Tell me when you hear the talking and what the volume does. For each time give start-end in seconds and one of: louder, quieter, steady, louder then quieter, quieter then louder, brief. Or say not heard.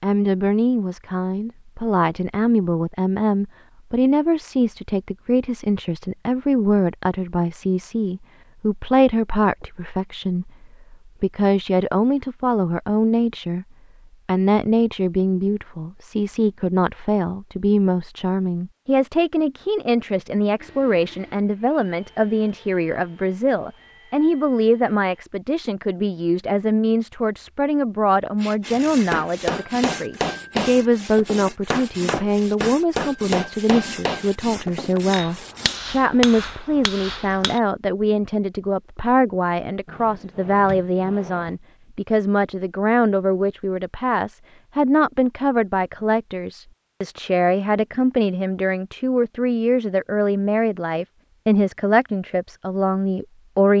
0.0-13.7 steady
14.2-53.7 steady.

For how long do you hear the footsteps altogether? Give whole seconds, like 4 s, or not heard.
not heard.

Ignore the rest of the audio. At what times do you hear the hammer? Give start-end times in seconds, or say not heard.
29.1-37.6.